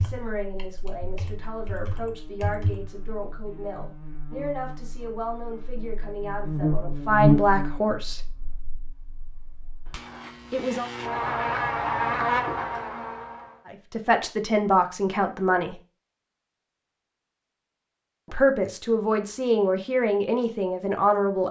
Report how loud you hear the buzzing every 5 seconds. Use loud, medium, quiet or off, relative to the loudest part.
quiet, loud, loud, off, off.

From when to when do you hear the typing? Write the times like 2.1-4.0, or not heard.
0.0-2.9.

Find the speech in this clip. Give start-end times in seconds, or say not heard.
0.0-8.2, 10.5-10.9, 13.7-15.8, 18.3-21.4.